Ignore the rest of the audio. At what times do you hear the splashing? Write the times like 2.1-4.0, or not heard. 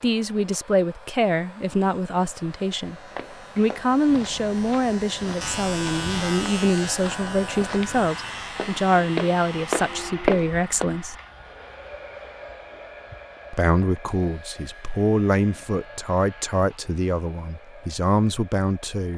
not heard.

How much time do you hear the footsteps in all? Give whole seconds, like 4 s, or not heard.
8 s.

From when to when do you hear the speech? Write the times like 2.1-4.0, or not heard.
0.0-3.0, 3.5-11.2, 13.5-19.1.